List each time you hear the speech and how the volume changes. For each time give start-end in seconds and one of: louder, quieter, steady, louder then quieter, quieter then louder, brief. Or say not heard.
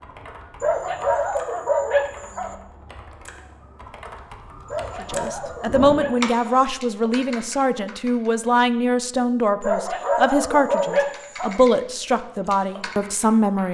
5.0-13.6 steady.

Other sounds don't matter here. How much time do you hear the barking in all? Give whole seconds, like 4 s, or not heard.
6 s.